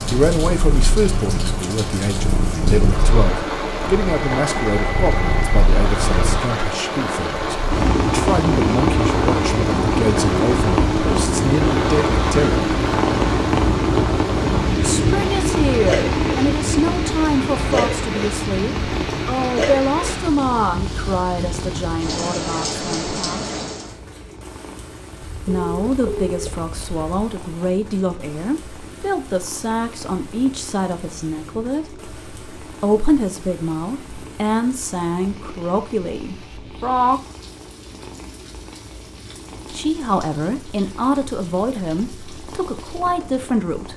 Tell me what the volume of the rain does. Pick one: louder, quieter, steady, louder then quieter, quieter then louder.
quieter.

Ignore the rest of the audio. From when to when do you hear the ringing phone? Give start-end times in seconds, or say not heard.
4.3-5.6, 25.2-27.1.